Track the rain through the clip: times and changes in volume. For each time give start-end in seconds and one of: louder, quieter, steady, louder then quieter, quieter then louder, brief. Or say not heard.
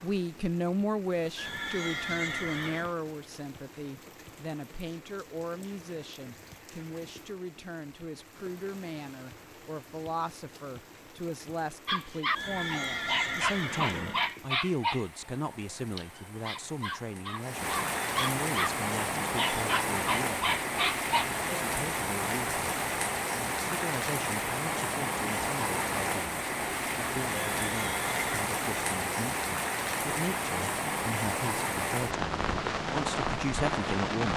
0.0-34.3 louder.